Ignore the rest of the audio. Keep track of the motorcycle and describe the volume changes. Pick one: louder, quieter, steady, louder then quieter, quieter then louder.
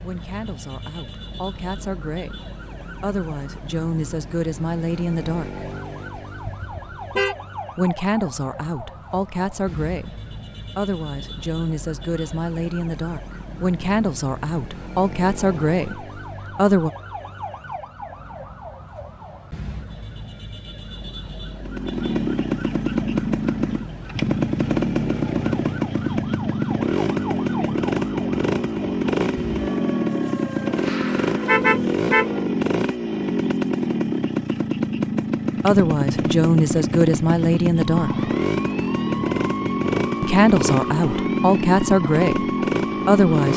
steady.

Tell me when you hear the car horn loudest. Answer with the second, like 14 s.
32 s.